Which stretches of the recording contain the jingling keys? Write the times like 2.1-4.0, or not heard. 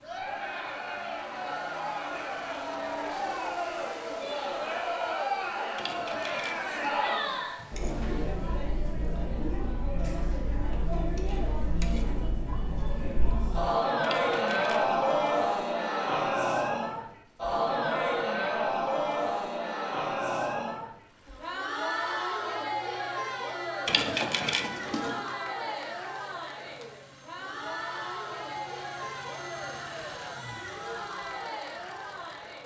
5.8-7.0, 14.0-14.9, 23.9-25.4.